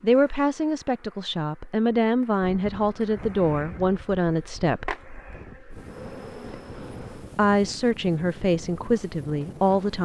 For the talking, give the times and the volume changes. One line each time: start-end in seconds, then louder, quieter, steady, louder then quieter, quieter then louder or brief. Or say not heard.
0.0-5.0 steady
7.3-10.0 brief.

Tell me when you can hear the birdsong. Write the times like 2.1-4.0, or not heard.
not heard.